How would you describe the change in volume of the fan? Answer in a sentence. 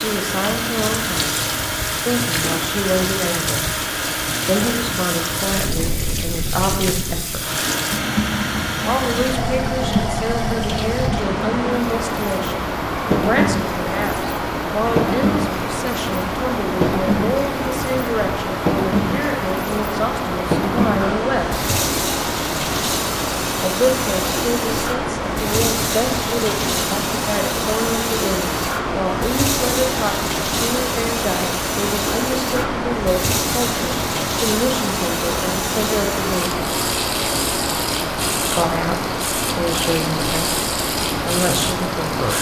The loudness of the fan stays about the same.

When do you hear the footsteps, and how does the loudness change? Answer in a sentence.
You can't hear the footsteps here.